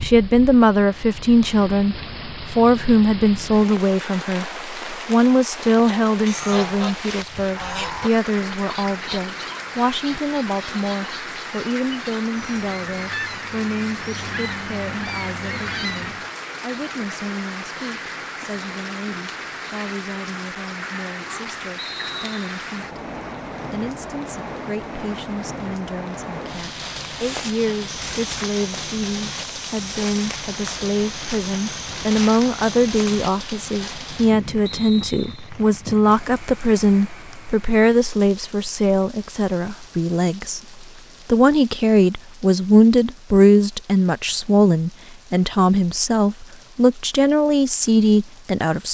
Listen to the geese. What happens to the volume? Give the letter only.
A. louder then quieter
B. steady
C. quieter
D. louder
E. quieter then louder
E.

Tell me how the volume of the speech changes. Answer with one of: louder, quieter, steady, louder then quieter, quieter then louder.
quieter then louder.